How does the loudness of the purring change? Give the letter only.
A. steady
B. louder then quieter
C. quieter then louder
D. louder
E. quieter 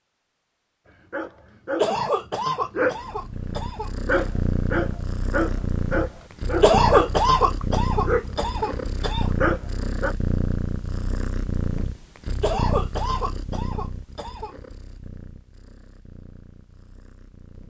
E.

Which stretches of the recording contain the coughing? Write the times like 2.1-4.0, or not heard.
1.8-3.9, 6.6-9.3, 12.4-14.6.